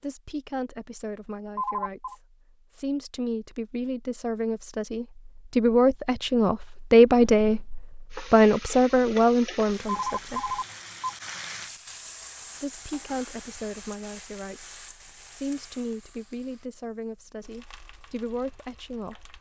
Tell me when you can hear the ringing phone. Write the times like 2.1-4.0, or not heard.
1.6-2.1, 9.8-11.2.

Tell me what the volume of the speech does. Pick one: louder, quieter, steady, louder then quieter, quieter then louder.
louder then quieter.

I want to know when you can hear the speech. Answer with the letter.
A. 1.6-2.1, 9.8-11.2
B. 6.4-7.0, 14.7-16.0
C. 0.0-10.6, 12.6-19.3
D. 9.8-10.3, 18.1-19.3
C.